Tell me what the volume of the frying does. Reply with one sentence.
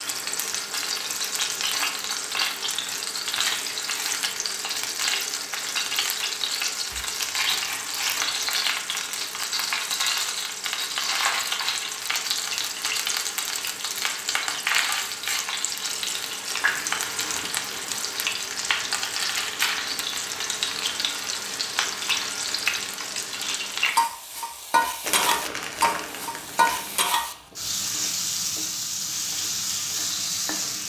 The volume of the frying stays about the same.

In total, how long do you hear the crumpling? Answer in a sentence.
You can hear the crumpling for 5 seconds altogether.